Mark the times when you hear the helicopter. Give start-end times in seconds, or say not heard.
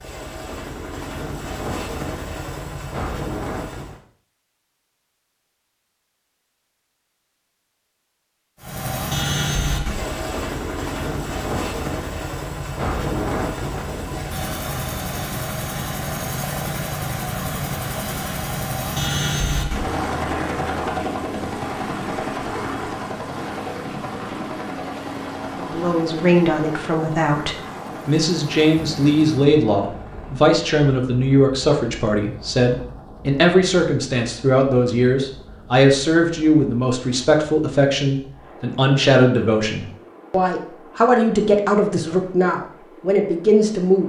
0.0-4.0, 8.6-44.0.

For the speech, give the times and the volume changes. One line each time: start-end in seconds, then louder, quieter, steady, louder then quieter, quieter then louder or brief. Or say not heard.
25.6-44.0 steady.